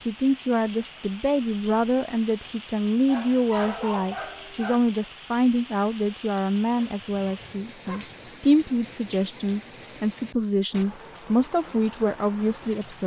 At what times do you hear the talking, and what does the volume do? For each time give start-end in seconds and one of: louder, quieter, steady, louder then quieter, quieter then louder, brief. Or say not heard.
0.1-13.0 steady.